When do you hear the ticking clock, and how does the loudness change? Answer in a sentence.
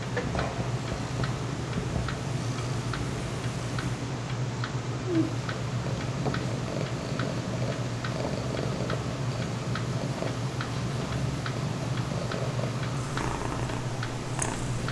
The ticking clock can be heard from 0.0 to 14.8 s, at a steady volume.